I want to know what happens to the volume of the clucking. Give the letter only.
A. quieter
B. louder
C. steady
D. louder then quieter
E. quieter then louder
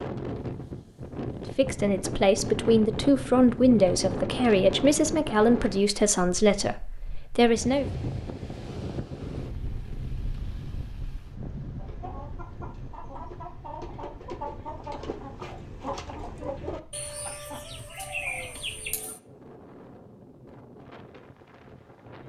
B.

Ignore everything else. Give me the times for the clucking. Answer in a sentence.
You can hear the clucking from 11.8 to 19.2 s.